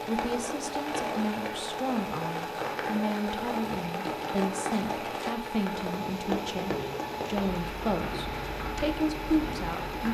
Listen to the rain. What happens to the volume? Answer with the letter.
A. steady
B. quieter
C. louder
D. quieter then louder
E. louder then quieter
A.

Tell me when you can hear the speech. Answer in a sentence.
The speech can be heard from 0.1 to 10.0 s.